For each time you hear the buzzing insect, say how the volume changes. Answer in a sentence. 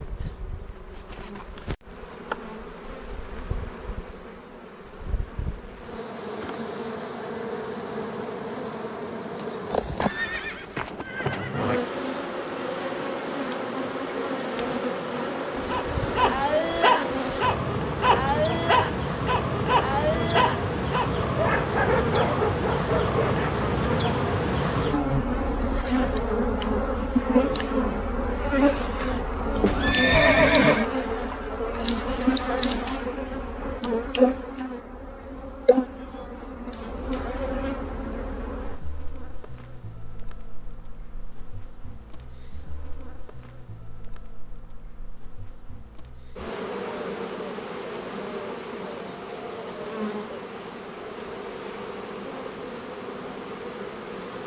You can hear the buzzing insect from 0.0 to 54.4 s, getting louder then quieter.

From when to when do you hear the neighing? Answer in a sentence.
The neighing can be heard from 10.0 to 11.8 s and from 29.6 to 30.9 s.